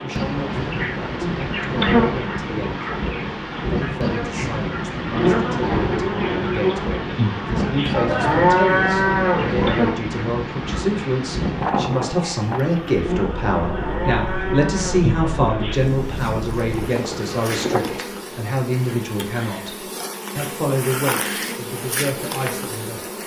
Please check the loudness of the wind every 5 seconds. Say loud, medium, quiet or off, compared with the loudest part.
loud, loud, loud, loud, off.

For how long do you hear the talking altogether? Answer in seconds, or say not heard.
22 s.